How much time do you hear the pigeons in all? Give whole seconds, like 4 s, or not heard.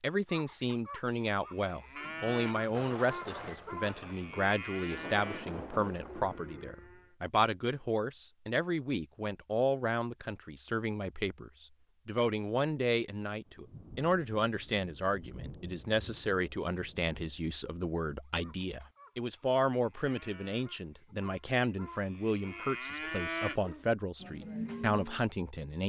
not heard.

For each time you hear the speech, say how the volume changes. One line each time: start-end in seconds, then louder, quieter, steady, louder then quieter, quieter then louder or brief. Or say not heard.
0.0-25.8 steady.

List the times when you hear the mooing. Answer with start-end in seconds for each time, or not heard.
0.1-7.2, 18.2-25.2.